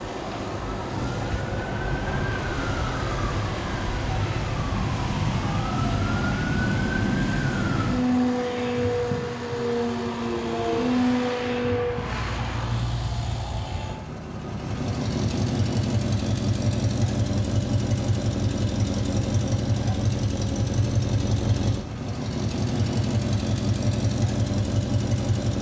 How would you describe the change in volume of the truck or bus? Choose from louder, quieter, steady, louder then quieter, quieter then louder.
louder.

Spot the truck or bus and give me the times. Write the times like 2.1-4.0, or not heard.
0.0-25.5.